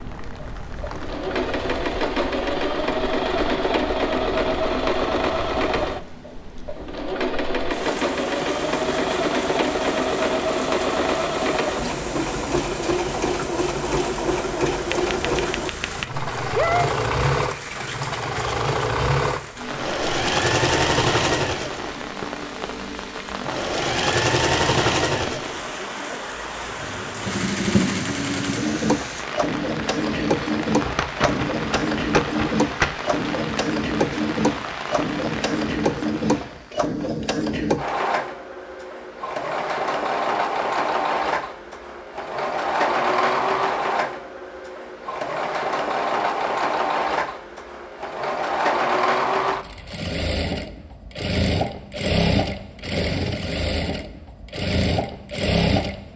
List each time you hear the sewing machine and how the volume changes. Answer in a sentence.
You can hear the sewing machine from 0.0 to 56.1 s, at a steady volume.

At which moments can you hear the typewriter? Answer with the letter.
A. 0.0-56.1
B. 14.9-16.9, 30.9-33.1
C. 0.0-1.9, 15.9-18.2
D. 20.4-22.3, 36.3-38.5
B.